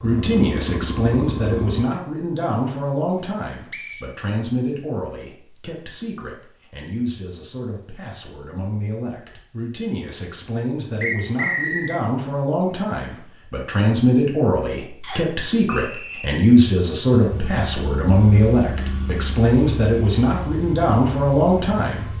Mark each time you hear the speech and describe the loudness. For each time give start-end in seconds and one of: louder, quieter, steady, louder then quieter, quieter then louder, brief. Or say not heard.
0.0-22.1 quieter then louder.